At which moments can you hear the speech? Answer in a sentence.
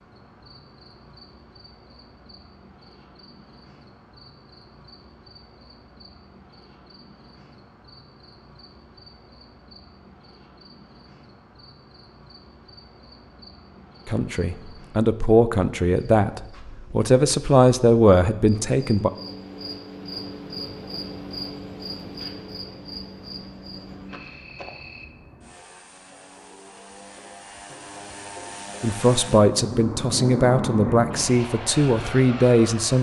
You can hear the speech from 14.1 to 19.1 s and from 28.8 to 32.9 s.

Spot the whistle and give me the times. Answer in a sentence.
The whistle can't be heard in this clip.